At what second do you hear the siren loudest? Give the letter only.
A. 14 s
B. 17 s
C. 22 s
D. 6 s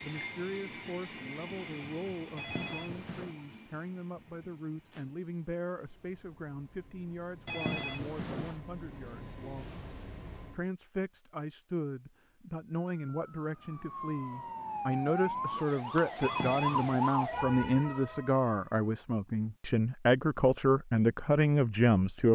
B.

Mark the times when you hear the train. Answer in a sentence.
You can hear the train from 0.0 to 10.7 s.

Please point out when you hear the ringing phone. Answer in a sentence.
The ringing phone can be heard from 2.4 to 3.4 s, from 7.5 to 8.6 s and from 16.2 to 17.0 s.